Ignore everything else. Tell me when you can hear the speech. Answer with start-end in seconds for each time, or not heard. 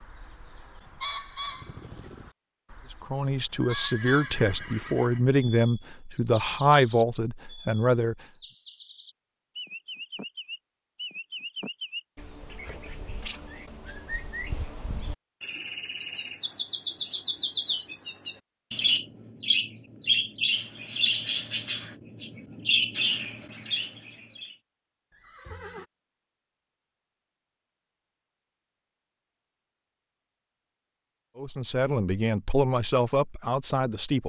2.9-8.2, 31.4-34.2.